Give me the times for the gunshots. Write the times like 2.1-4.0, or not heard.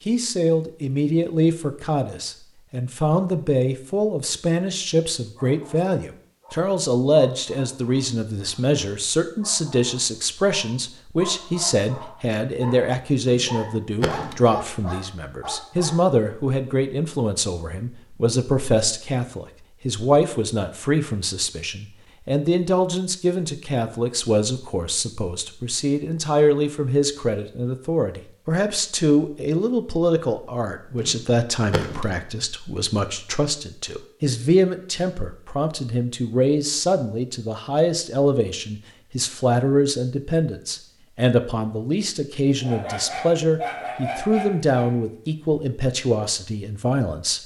13.2-14.4, 30.9-32.1.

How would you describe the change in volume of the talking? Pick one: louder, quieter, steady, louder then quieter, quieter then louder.
steady.